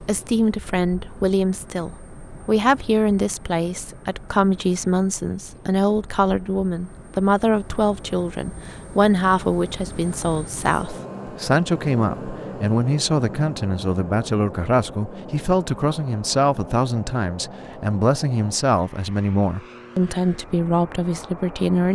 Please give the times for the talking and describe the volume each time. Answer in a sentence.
The talking can be heard from 0.0 to 21.8 s, at a steady volume.